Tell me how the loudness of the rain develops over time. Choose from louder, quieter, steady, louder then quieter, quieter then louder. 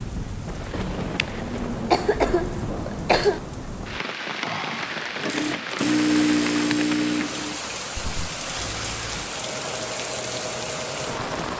steady.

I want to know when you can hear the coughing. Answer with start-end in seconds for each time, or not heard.
0.8-3.4.